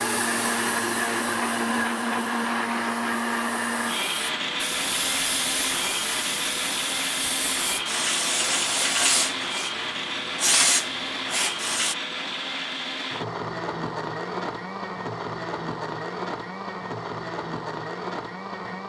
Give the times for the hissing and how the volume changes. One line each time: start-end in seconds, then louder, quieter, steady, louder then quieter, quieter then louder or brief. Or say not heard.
0.0-11.9 louder.